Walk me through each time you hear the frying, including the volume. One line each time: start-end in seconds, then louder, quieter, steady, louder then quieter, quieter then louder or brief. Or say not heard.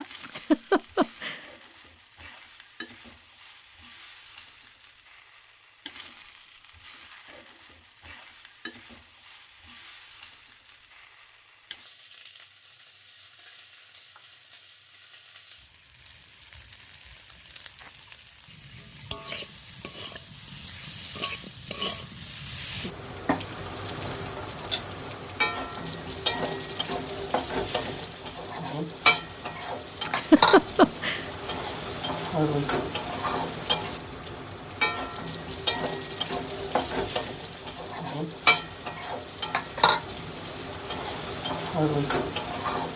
0.0-42.9 louder.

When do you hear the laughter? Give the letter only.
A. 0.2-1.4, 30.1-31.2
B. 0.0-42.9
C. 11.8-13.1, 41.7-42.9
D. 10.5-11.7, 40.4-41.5
A.